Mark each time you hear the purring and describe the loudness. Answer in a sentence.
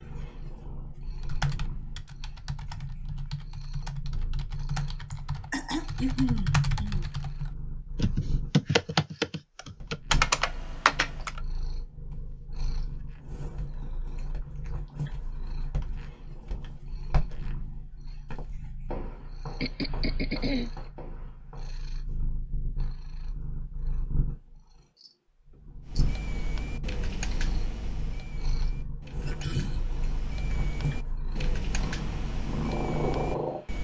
You can hear the purring from 0.0 to 33.7 s, getting louder.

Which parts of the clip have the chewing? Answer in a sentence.
The chewing can't be heard in this clip.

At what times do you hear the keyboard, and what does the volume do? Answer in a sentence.
The keyboard can be heard from 1.2 to 11.4 s, getting louder; and from 25.8 to 33.7 s, getting quieter then louder.